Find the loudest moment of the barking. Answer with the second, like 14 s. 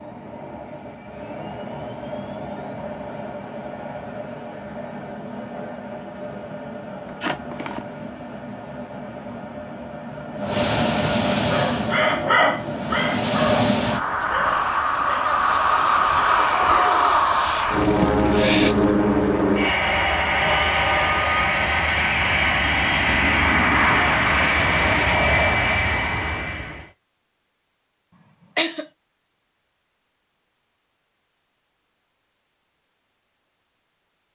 12 s.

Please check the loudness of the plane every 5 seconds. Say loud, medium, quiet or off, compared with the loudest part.
quiet, quiet, loud, loud, loud, loud, off.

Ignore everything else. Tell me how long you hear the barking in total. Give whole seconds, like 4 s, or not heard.
4 s.